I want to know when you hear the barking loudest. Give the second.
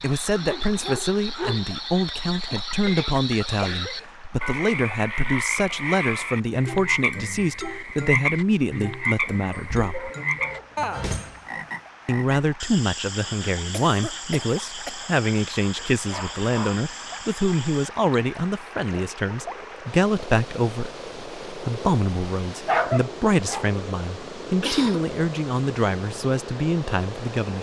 23 s.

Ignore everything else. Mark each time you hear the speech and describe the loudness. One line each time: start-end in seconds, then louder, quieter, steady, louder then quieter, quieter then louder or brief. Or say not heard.
0.0-10.1 steady
12.1-27.5 steady.